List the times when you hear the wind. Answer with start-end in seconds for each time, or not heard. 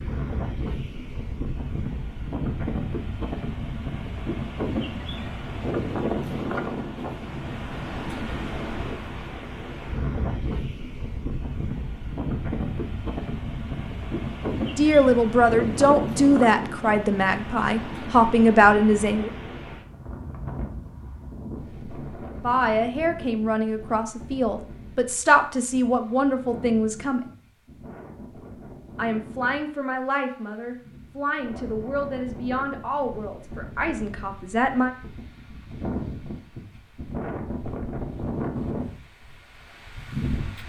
0.0-40.6.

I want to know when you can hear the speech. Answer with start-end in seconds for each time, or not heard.
14.8-19.3, 22.4-27.2, 28.9-34.9.